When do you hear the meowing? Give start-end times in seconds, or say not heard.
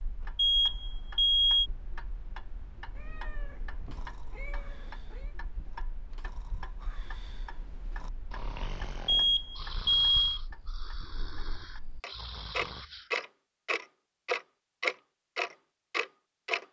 3.0-5.3.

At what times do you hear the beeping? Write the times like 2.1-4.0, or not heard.
0.3-1.7, 9.1-10.4.